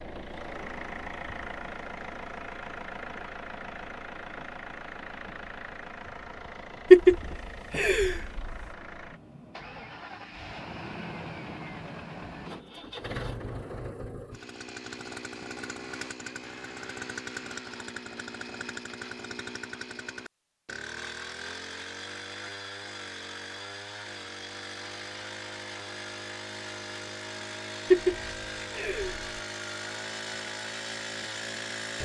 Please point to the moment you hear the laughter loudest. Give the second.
7 s.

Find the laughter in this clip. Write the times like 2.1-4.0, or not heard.
6.9-8.6, 27.9-29.2.